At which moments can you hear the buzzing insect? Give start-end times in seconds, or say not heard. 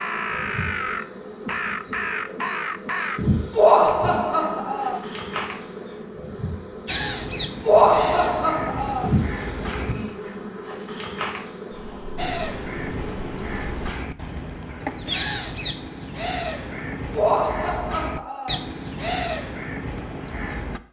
0.0-13.9.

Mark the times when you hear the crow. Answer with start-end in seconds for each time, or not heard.
0.0-3.2, 6.8-9.9, 12.2-20.8.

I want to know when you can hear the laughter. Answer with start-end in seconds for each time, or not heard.
3.5-5.0, 7.6-9.1, 17.1-18.6.